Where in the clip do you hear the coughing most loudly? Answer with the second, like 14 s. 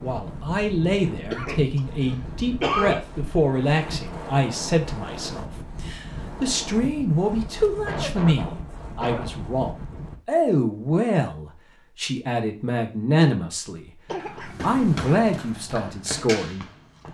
3 s.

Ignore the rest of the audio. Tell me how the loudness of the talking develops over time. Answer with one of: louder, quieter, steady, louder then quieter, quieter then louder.
steady.